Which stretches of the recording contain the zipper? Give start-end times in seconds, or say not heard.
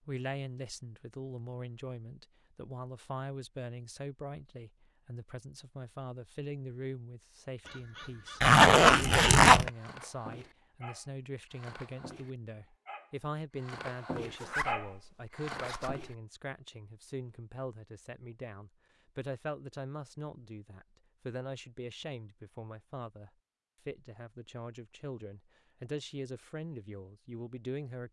8.4-9.7, 14.3-16.1.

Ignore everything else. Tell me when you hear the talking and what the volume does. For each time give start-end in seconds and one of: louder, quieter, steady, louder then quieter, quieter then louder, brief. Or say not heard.
0.0-28.0 steady.